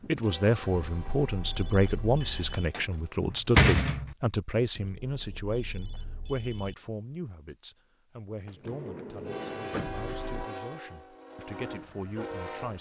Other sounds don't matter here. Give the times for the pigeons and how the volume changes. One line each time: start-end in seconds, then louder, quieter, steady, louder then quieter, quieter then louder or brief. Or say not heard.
not heard.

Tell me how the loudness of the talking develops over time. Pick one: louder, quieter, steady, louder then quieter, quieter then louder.
quieter.